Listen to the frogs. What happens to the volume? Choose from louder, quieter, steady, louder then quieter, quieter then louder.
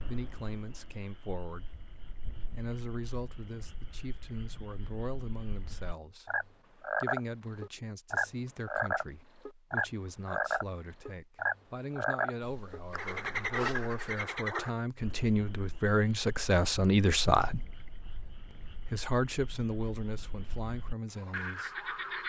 louder then quieter.